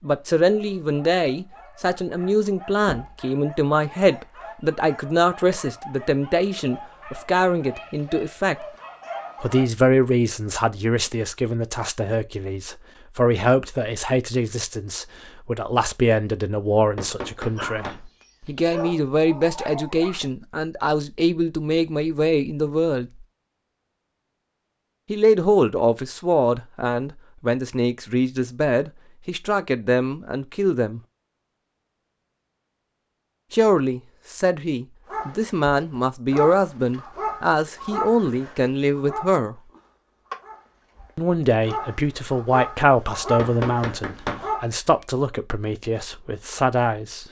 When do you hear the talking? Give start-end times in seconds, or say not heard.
0.0-8.7, 9.4-23.1, 25.1-31.0, 33.5-39.5, 41.1-47.2.